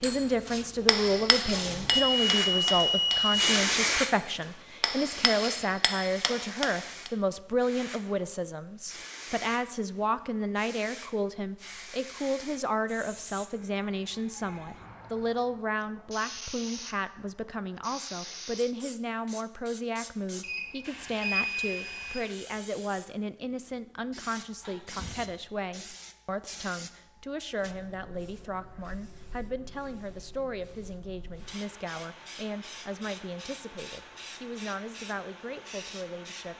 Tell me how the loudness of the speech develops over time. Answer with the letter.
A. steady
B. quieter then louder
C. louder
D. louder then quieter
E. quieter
E.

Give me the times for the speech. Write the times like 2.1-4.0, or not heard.
0.0-36.5.